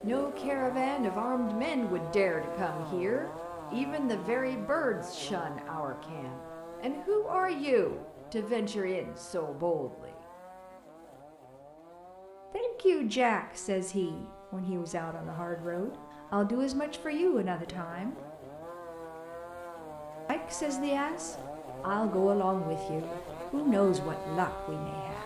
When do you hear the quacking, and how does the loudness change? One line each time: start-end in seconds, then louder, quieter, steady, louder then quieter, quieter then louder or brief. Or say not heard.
not heard.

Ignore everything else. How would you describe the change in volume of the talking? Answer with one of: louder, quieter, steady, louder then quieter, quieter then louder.
steady.